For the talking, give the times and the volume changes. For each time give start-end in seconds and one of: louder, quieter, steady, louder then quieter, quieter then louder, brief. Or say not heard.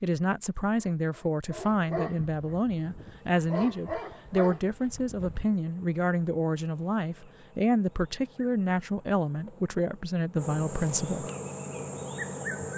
0.0-11.2 steady.